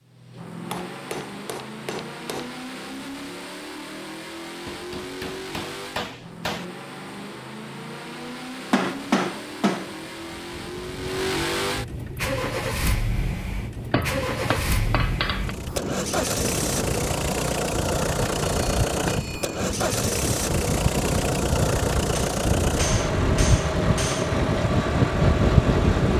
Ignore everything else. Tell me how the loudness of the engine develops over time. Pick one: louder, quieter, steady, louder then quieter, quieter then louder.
louder.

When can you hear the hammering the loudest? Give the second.
9 s.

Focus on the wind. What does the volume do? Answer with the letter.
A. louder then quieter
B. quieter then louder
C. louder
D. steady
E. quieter
C.